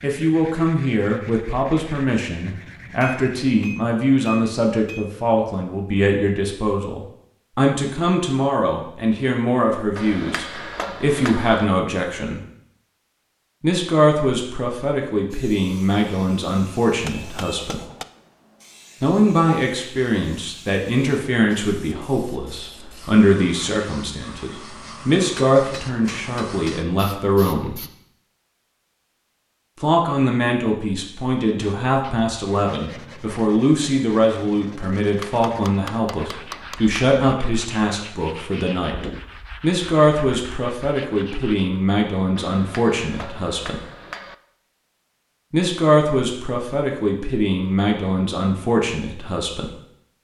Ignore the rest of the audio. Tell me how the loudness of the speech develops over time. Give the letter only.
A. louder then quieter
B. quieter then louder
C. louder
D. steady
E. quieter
D.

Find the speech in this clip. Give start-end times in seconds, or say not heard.
0.0-12.4, 13.6-17.8, 19.0-27.8, 29.8-43.8, 45.5-49.7.